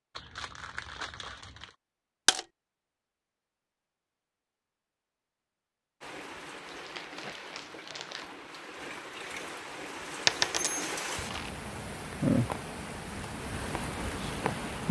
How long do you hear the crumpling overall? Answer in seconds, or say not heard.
4 s.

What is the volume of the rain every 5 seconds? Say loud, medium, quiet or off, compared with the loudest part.
off, medium, loud.